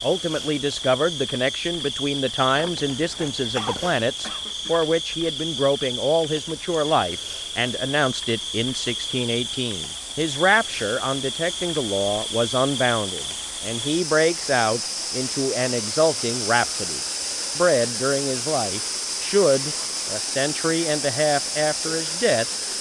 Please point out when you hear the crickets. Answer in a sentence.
The crickets can be heard from 0.0 to 22.7 s.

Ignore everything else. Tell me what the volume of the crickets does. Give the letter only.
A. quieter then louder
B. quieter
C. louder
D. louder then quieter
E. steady
E.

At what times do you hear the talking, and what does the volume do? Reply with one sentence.
You can hear the talking from 0.0 to 22.4 s, at a steady volume.